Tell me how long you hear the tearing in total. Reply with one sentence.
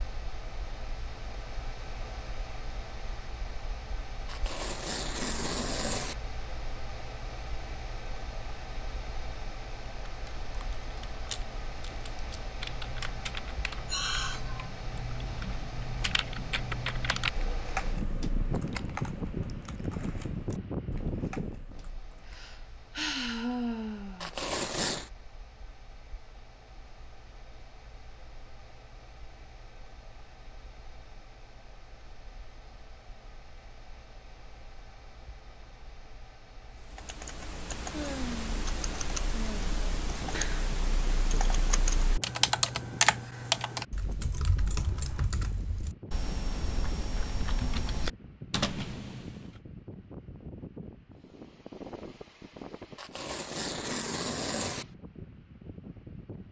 You can hear the tearing for 5 seconds altogether.